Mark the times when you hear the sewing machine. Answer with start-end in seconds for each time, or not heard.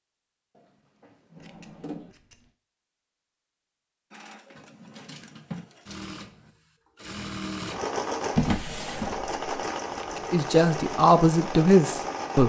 4.1-12.4.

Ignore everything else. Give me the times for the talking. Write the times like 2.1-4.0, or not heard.
10.3-12.4.